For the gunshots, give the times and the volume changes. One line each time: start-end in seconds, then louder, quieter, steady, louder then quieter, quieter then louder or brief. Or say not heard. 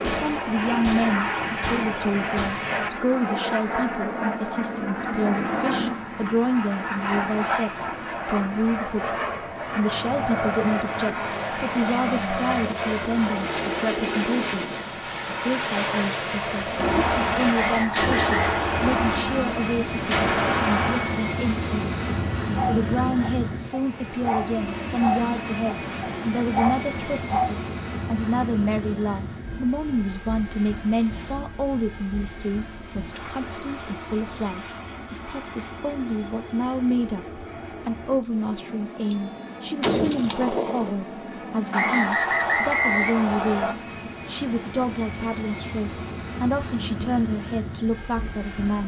0.0-2.7 brief
16.5-21.2 quieter then louder
39.1-40.9 brief.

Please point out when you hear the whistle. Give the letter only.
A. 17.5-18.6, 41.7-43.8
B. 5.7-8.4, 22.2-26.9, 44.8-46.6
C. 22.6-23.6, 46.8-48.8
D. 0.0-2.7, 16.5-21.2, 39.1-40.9
A.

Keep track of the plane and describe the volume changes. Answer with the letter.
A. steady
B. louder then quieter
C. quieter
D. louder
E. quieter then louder
C.